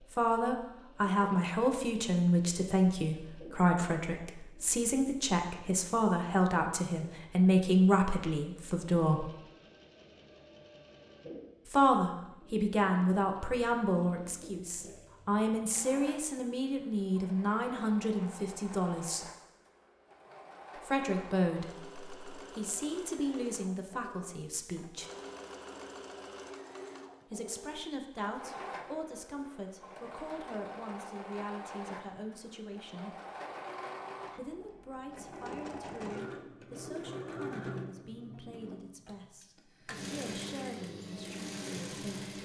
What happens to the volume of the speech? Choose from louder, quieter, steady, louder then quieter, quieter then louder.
quieter.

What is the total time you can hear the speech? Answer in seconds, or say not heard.
35 s.